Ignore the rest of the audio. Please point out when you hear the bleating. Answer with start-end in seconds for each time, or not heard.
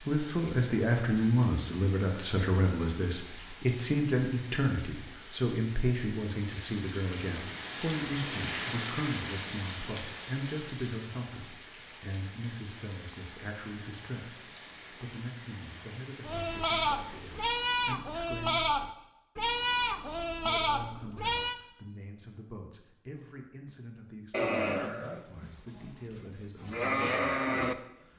16.2-21.6, 24.3-27.8.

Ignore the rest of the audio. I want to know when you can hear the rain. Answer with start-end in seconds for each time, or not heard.
0.0-17.5.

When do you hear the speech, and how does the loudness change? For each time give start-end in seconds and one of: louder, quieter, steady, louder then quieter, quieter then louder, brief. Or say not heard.
0.1-18.6 quieter
20.4-28.1 steady.